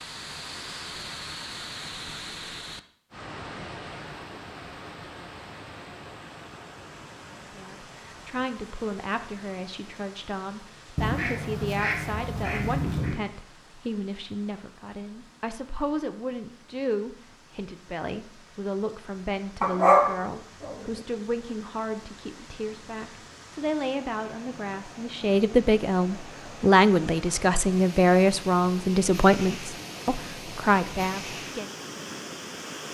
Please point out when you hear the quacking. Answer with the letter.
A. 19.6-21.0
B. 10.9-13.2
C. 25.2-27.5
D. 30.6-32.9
B.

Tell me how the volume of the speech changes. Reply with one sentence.
The loudness of the speech goes up.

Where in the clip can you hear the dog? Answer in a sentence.
The dog can be heard from 19.6 to 21.0 s.